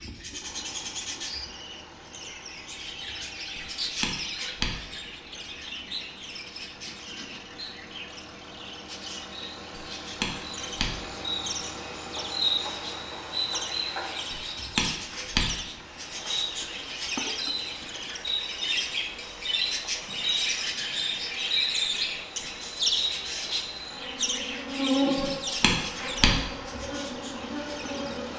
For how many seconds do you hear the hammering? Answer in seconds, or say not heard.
5 s.